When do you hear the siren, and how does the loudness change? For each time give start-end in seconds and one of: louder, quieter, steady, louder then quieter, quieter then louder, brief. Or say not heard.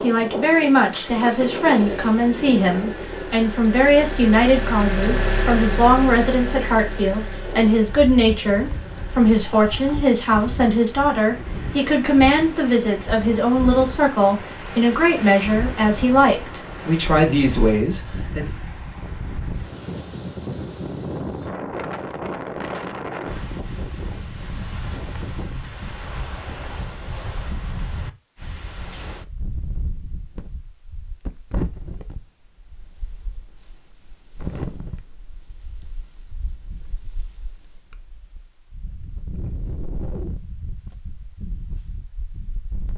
not heard.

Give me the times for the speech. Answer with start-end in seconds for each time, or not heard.
0.0-18.5.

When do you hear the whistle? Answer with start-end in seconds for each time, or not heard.
not heard.